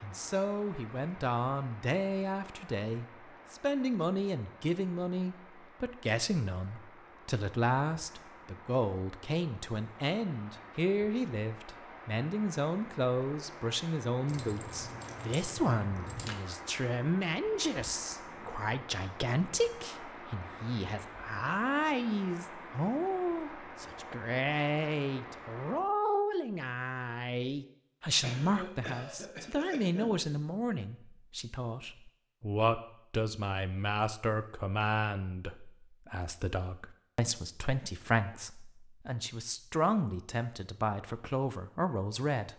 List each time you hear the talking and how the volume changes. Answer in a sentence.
You can hear the talking from 0.0 to 42.5 s, at a steady volume.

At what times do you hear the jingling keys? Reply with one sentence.
The jingling keys can be heard from 14.2 to 16.4 s.